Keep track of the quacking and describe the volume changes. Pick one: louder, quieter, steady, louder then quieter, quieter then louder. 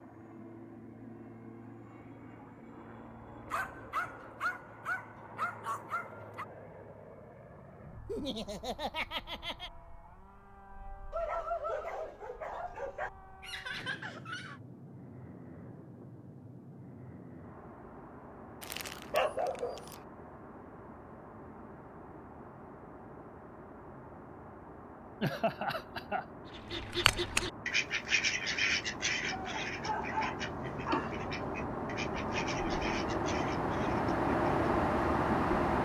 quieter.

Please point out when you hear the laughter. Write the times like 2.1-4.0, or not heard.
8.1-9.7, 13.4-14.6, 25.2-26.2.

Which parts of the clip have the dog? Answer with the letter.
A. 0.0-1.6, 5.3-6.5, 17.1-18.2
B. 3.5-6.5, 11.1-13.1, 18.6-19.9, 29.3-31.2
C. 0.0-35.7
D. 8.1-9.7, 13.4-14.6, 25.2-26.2
B.